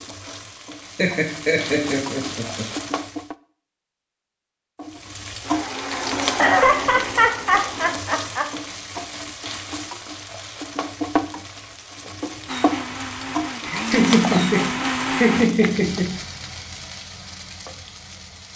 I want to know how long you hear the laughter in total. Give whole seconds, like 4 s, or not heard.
6 s.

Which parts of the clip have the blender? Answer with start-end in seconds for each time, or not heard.
5.4-8.0, 12.4-15.8.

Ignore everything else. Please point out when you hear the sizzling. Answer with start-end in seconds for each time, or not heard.
0.0-3.4, 4.8-18.5.